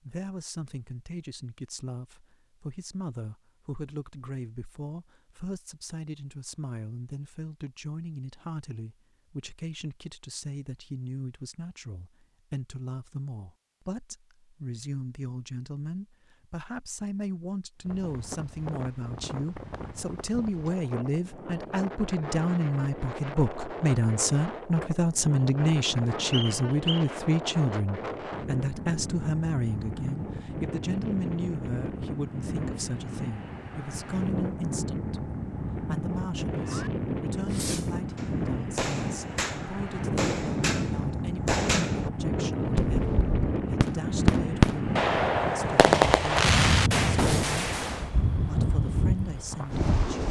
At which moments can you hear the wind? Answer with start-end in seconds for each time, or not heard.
17.8-50.2.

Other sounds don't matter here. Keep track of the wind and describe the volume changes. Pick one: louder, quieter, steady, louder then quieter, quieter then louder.
louder.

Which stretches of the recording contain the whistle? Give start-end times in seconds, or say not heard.
26.3-27.1.